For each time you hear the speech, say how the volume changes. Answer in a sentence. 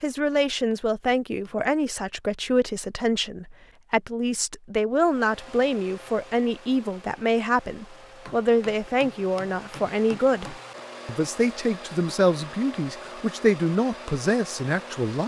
You can hear the speech from 0.0 to 15.2 s, at a steady volume.